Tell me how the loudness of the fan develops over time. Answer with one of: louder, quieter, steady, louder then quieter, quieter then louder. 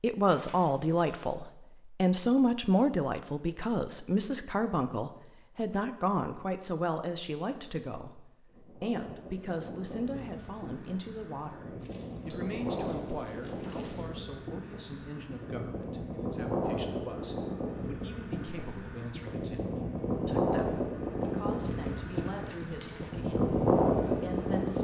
louder.